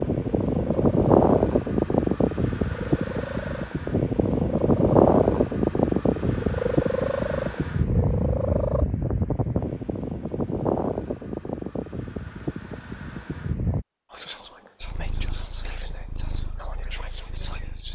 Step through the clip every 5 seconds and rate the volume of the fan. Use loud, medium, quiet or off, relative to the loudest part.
loud, loud, medium, off.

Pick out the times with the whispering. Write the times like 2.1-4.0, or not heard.
14.1-17.9.